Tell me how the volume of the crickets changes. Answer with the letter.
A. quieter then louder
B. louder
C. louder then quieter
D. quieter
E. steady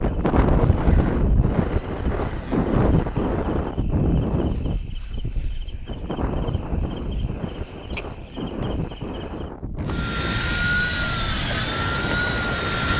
B.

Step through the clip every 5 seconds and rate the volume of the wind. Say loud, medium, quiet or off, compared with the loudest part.
loud, medium, medium.